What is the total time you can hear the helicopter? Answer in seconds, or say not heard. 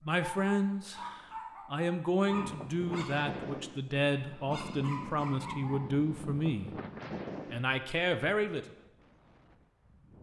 not heard.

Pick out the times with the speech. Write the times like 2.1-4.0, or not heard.
0.0-6.8, 7.5-8.7.